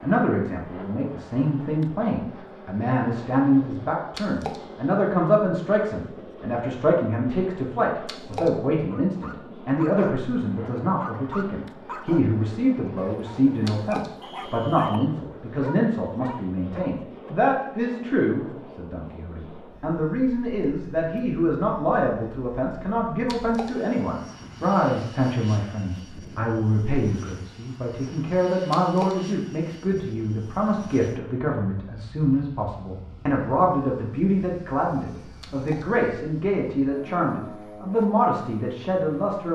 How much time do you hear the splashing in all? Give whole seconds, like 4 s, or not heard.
3 s.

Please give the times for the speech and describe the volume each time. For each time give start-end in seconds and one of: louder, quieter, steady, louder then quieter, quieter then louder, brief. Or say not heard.
0.0-39.5 steady.